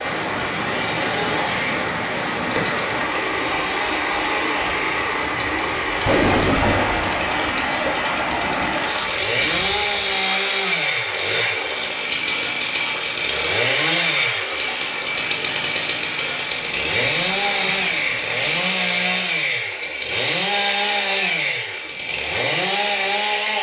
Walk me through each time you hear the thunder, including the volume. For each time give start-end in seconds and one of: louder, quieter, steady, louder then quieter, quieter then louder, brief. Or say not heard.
5.8-10.2 quieter.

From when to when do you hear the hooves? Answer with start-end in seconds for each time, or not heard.
not heard.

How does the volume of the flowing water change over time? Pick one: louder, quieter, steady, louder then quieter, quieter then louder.
quieter.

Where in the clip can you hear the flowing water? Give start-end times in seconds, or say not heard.
0.0-18.7.